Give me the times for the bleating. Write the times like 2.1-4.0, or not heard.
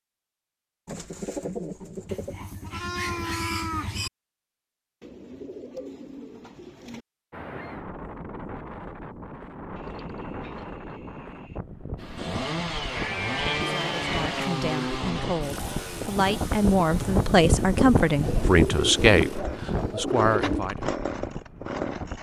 2.0-4.1, 12.9-14.4.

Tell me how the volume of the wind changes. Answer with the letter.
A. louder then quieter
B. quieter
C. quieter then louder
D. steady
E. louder
A.